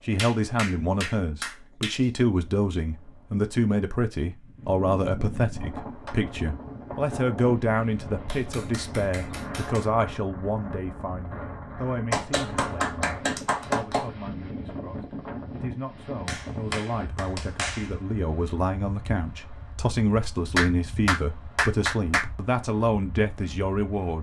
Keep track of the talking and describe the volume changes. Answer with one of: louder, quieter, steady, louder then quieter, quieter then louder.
quieter then louder.